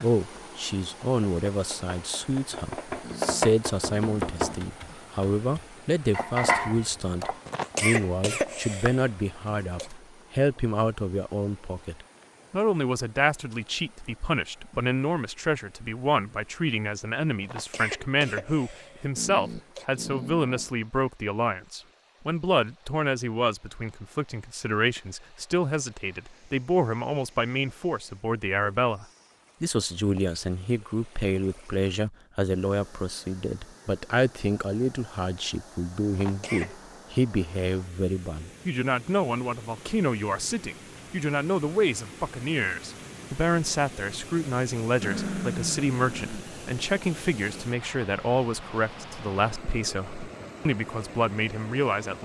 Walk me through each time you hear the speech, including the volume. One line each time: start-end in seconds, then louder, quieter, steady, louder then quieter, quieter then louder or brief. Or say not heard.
0.0-52.1 steady.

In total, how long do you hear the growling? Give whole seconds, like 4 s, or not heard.
5 s.